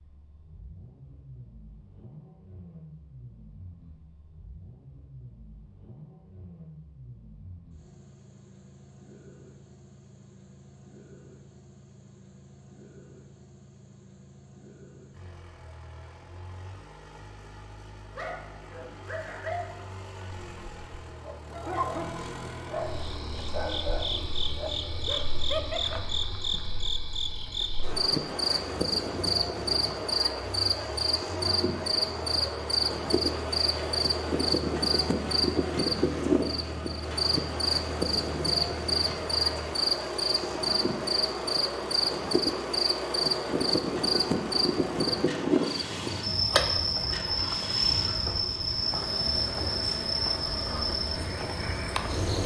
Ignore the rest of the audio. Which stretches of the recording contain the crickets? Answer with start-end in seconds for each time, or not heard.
22.8-52.4.